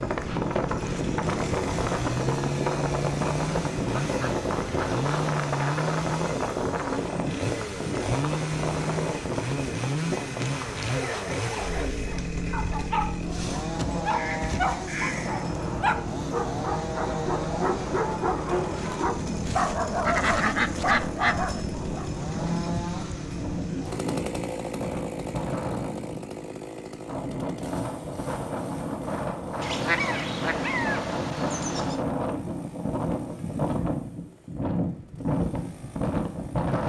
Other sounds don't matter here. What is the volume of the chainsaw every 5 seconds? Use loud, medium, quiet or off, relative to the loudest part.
loud, loud, loud, loud, loud, medium, quiet, quiet.